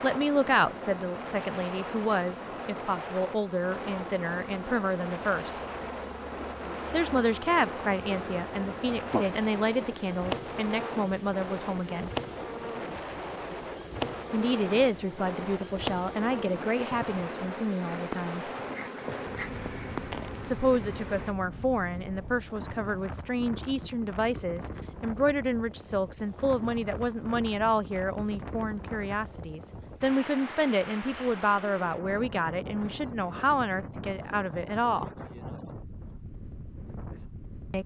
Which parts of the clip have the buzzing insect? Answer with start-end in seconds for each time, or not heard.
0.0-21.4.